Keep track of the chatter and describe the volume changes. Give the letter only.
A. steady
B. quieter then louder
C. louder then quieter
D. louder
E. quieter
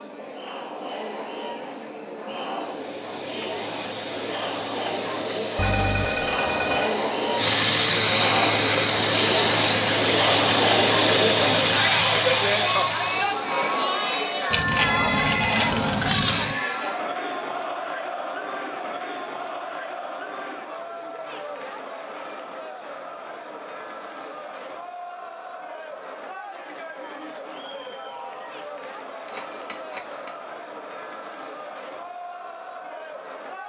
C.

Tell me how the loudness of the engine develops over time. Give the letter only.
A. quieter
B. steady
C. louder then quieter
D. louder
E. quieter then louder
D.